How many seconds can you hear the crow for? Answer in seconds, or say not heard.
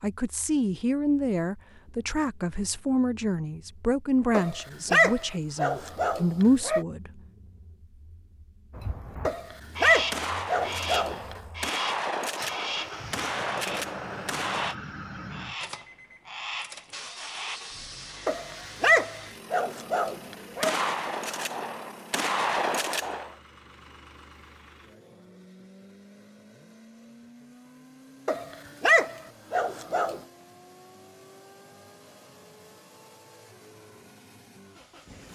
9 s.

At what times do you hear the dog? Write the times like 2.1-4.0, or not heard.
4.3-6.8, 9.2-11.3, 18.2-20.8, 28.2-30.2.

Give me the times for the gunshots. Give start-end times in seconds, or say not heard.
10.1-14.8, 20.6-23.4.